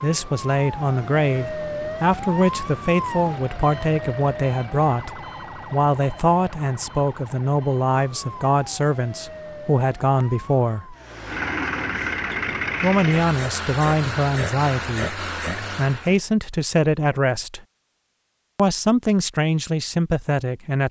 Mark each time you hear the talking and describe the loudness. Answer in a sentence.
You can hear the talking from 0.0 to 10.9 s, at a steady volume; from 12.8 to 17.6 s, getting quieter then louder; and briefly from 18.6 to 20.8 s.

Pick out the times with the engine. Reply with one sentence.
The engine can be heard from 10.9 to 16.2 s.